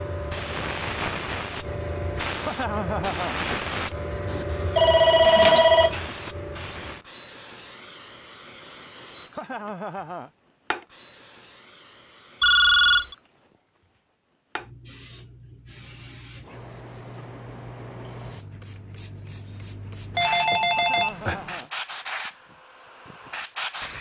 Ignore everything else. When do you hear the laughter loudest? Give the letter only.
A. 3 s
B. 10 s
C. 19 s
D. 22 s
A.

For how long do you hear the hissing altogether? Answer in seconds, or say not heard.
24 s.